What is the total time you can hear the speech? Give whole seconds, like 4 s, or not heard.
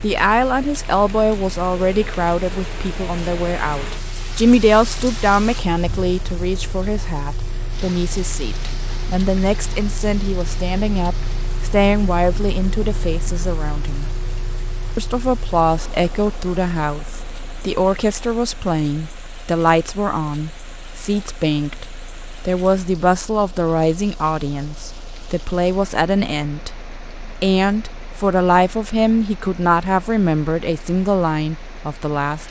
31 s.